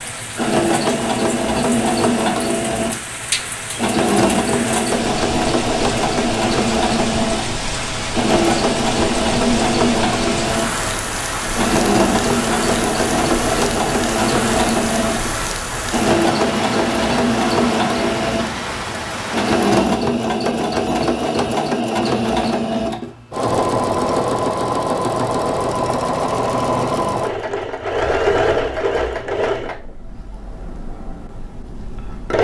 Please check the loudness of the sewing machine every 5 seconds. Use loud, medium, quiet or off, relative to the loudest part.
loud, loud, loud, loud, loud, loud, medium.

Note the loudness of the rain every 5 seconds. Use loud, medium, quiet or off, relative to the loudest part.
medium, loud, loud, loud, off, off, off.